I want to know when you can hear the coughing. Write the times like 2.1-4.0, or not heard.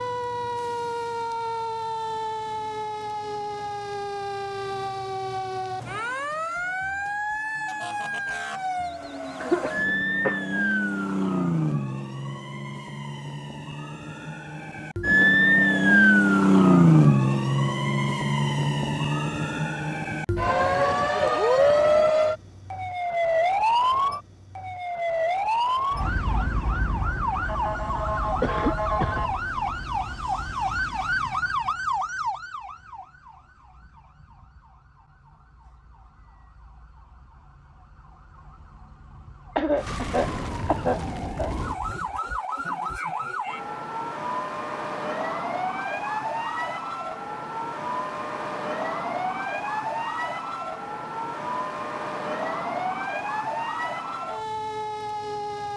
9.4-10.4, 28.4-29.2, 39.5-41.5.